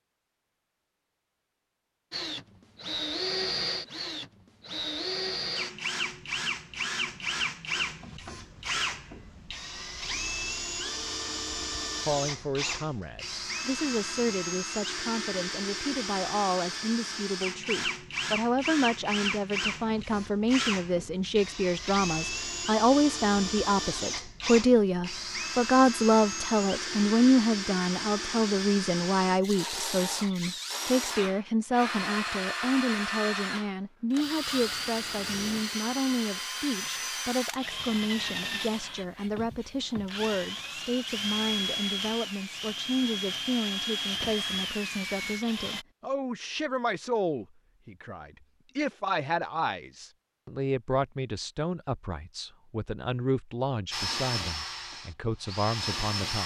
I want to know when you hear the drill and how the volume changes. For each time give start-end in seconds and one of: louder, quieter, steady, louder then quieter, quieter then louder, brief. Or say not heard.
2.1-45.9 steady
53.9-56.4 brief.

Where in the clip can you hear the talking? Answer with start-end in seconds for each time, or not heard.
12.1-56.4.